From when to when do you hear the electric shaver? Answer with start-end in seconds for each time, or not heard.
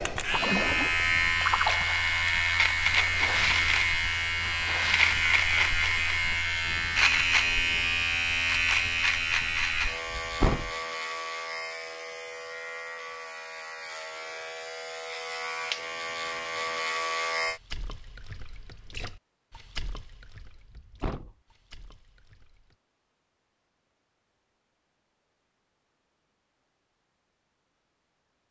0.0-17.6.